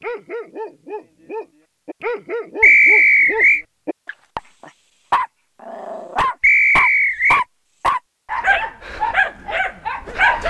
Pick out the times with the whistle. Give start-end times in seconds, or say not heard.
2.6-3.6, 6.4-7.5.